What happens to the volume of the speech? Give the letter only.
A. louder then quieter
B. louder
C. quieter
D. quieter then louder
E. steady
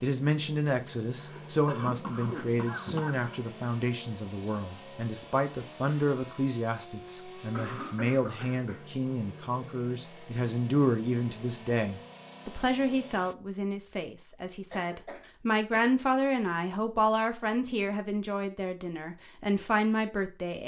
E.